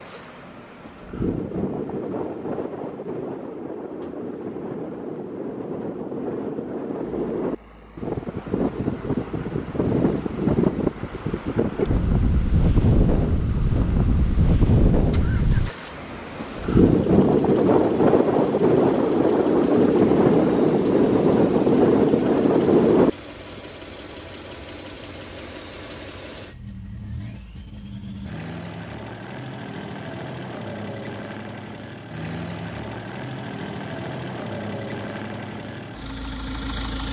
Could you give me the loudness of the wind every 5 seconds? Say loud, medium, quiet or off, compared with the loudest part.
quiet, medium, medium, loud, loud, off, off, off.